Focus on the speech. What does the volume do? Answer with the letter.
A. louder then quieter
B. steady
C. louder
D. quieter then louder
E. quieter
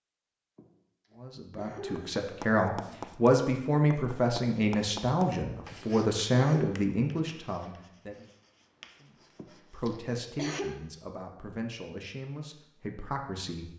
E.